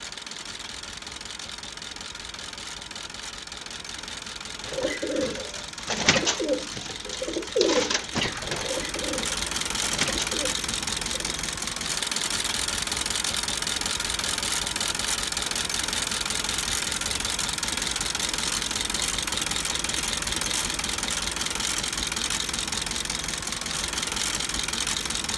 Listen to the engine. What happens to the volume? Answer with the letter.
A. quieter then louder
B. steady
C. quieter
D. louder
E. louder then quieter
D.